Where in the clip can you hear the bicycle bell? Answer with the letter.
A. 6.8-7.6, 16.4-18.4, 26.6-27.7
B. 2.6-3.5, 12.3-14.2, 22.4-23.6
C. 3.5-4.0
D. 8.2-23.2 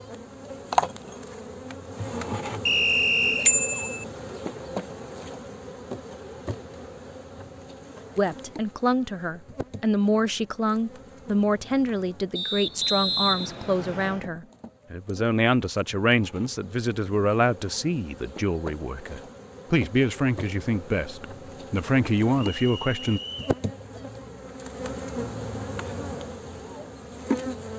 C.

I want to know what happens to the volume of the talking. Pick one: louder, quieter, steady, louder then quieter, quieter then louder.
steady.